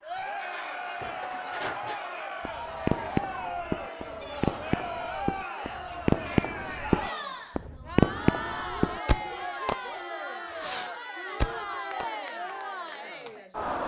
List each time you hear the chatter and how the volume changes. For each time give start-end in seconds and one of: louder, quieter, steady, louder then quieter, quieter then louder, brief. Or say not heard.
0.0-13.8 steady.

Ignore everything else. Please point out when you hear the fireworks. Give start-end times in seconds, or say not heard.
1.0-9.9, 10.5-12.1.